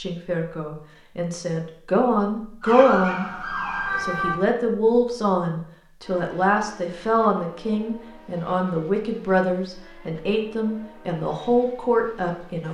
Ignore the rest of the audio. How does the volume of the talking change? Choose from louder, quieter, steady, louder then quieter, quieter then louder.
steady.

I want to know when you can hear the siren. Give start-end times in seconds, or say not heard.
2.6-4.4.